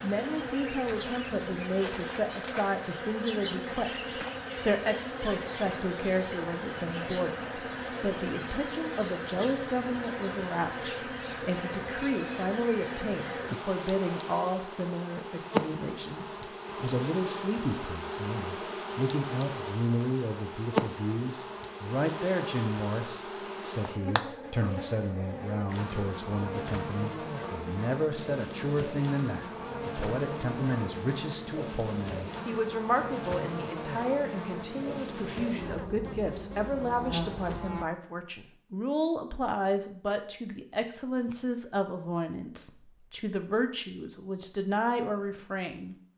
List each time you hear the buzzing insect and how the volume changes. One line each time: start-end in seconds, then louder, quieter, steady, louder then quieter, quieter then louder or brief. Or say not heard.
0.0-37.9 steady.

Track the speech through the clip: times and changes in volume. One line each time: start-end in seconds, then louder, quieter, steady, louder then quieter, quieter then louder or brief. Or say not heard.
0.0-46.0 steady.